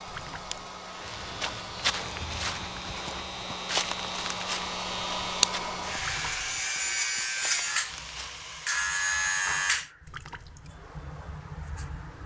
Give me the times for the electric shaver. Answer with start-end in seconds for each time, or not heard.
0.0-12.2.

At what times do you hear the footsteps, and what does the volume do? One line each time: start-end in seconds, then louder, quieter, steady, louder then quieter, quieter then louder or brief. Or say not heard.
1.0-8.6 quieter.